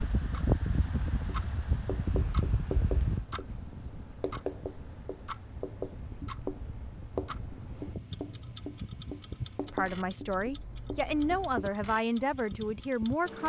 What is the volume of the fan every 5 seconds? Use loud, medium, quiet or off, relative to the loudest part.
loud, medium, medium.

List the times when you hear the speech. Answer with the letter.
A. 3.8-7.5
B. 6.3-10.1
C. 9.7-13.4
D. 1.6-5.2
C.